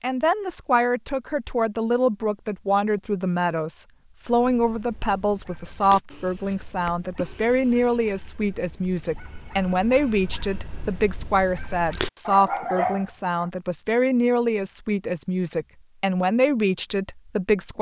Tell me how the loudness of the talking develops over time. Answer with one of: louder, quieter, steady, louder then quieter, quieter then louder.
steady.